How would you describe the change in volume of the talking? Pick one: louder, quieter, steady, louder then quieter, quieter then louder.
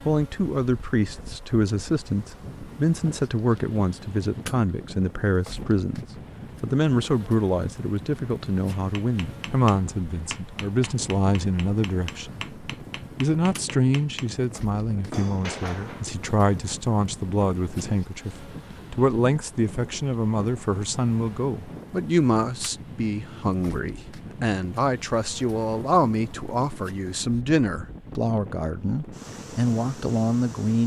steady.